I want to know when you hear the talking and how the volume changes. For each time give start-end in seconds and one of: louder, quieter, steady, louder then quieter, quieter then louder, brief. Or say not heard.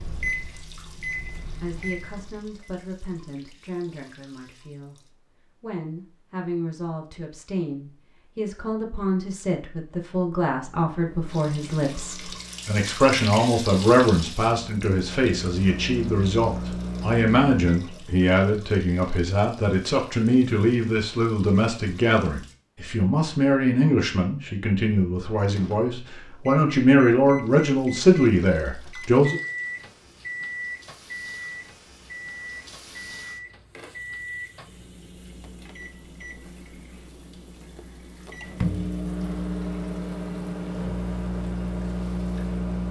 1.6-29.4 louder.